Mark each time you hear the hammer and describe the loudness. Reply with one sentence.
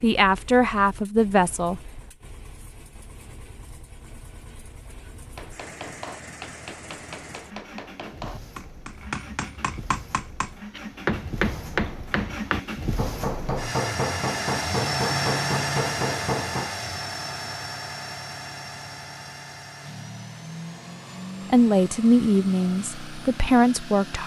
The hammer can be heard from 5.2 to 16.8 s, getting louder.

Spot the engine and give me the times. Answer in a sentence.
You can hear the engine from 0.0 to 24.2 s.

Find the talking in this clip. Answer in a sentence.
You can hear the talking from 0.0 to 1.8 s and from 21.5 to 24.2 s.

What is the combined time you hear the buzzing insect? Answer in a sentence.
You can't hear the buzzing insect here.